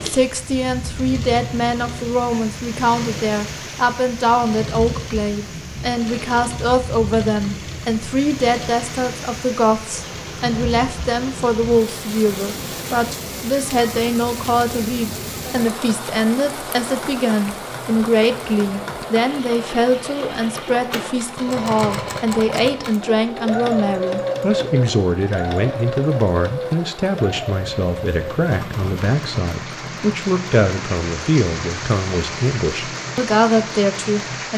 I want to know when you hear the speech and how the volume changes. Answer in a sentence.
The speech can be heard from 0.0 to 34.5 s, at a steady volume.